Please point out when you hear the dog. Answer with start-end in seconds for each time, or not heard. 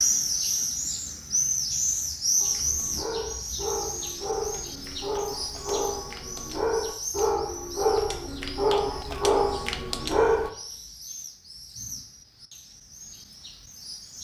2.4-10.5.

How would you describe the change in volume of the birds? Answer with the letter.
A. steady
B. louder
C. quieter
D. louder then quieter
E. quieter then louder
C.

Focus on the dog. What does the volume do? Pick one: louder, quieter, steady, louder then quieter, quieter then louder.
louder.